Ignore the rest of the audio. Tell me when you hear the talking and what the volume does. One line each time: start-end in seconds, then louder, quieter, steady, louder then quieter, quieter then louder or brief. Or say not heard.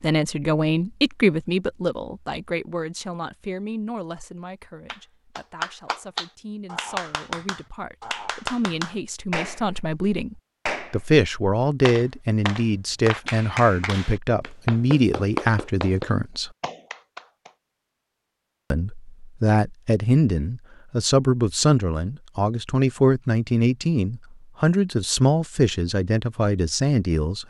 0.0-16.5 quieter then louder
18.7-27.4 steady.